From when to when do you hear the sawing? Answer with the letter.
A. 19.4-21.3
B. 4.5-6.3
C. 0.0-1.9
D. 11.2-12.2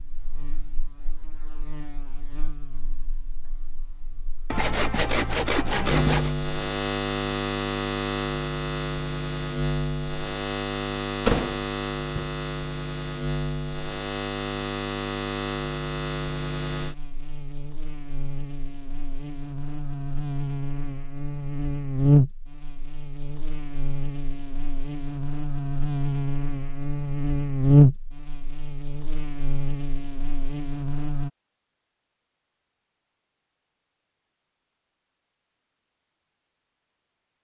B.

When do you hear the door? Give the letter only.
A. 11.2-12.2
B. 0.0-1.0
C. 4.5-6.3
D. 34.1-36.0
A.